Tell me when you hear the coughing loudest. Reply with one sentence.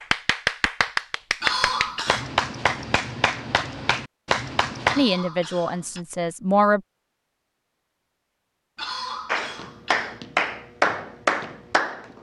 The loudest moment of the coughing is at 2 seconds.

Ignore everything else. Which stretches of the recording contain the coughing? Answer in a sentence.
The coughing can be heard from 1.4 to 2.3 s, from 4.8 to 6.0 s and from 8.8 to 10.2 s.